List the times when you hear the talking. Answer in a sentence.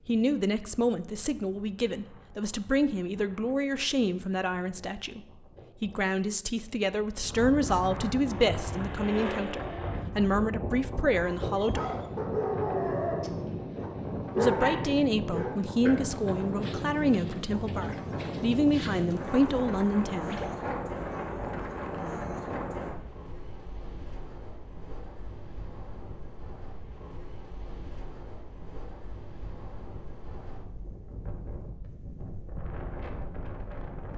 You can hear the talking from 0.1 to 5.2 s, from 5.8 to 11.8 s and from 14.3 to 20.4 s.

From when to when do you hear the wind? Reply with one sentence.
The wind can be heard from 0.0 to 34.1 s.